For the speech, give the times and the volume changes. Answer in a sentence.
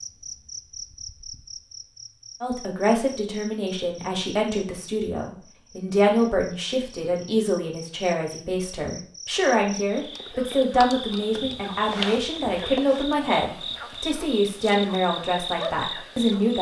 You can hear the speech from 2.4 to 16.5 s, at a steady volume.